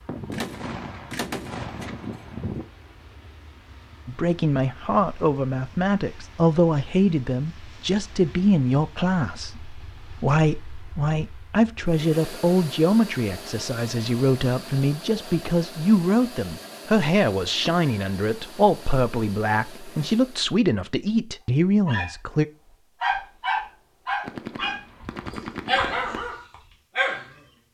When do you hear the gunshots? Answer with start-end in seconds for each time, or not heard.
0.1-2.6, 24.2-26.2.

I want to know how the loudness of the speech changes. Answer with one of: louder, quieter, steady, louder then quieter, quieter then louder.
steady.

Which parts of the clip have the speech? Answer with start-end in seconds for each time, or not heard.
4.0-22.4.